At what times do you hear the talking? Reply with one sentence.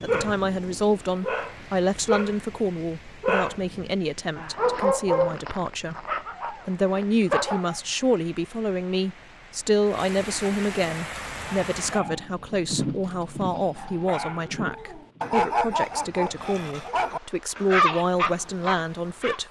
The talking can be heard from 0.0 to 19.4 s.